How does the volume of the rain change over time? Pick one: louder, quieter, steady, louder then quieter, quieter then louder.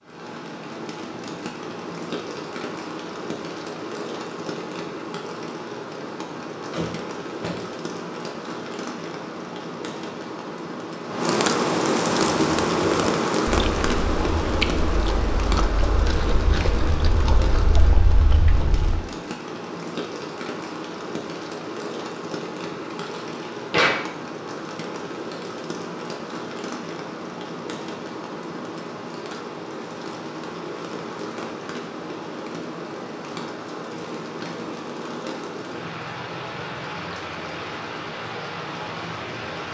louder then quieter.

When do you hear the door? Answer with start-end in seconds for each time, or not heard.
6.7-7.7, 22.6-23.9.